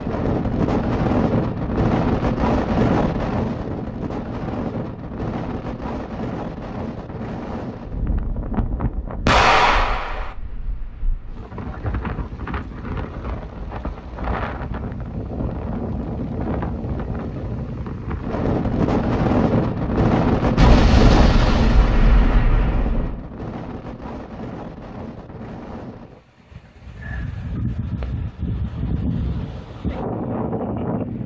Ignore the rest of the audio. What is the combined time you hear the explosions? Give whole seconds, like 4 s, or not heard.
4 s.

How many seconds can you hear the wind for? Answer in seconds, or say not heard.
31 s.